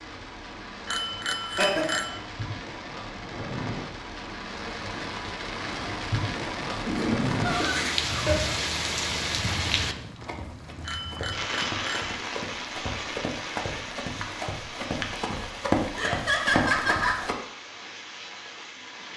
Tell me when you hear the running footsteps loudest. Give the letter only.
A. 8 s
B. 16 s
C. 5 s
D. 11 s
B.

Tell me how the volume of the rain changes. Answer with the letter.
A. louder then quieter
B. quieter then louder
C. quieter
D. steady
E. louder
A.